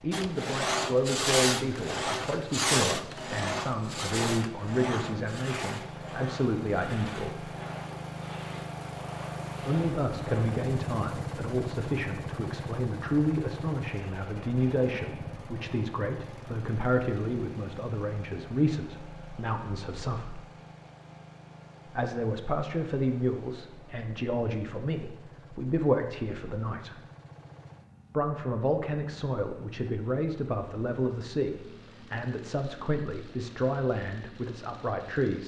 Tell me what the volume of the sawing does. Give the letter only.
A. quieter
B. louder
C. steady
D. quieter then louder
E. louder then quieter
A.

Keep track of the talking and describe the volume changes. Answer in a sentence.
The volume of the talking stays about the same.